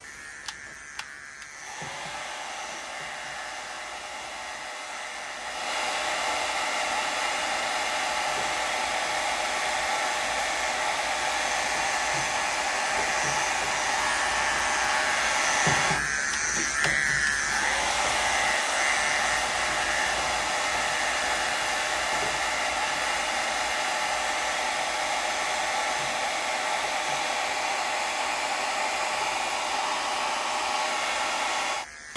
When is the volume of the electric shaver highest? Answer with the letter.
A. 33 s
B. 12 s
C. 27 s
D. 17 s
D.